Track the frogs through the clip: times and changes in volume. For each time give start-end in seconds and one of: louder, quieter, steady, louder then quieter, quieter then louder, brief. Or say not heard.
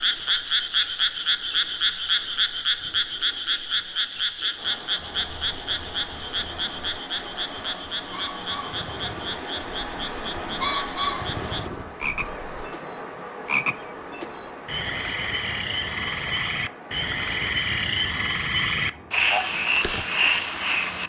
0.0-21.0 quieter then louder.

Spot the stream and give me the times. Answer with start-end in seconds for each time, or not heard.
4.5-21.0.